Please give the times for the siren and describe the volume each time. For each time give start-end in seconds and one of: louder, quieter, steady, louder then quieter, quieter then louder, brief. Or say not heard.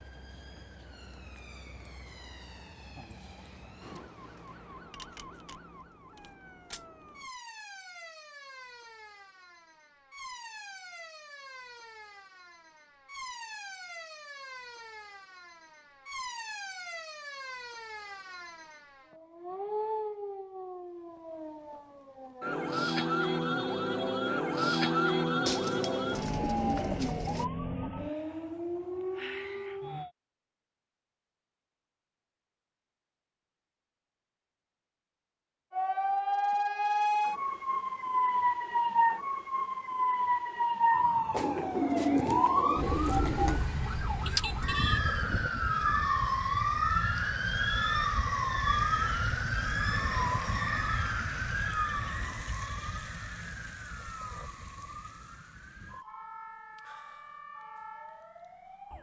0.0-30.1 louder
35.7-58.9 quieter.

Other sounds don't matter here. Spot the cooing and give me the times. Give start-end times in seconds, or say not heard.
25.4-27.4, 41.3-43.6.